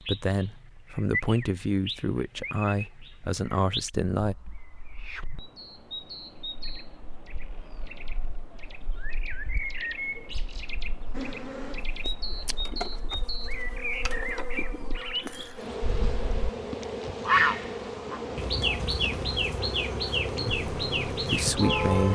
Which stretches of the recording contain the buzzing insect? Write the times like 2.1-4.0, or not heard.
11.1-22.1.